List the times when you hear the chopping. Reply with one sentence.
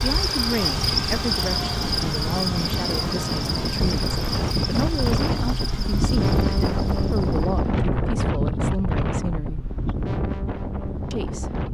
The chopping can't be heard in this clip.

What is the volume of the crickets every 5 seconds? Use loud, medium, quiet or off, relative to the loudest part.
loud, medium, off.